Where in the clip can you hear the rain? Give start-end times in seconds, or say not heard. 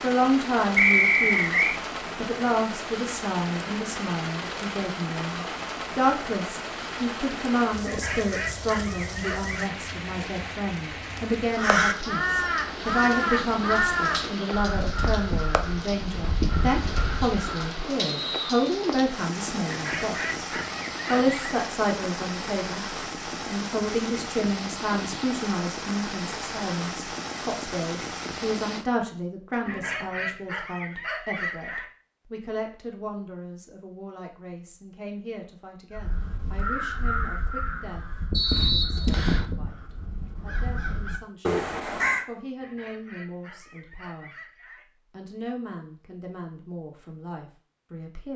0.0-28.9.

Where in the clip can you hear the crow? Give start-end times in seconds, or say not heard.
11.4-17.8, 36.0-42.2.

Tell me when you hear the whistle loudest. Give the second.
1 s.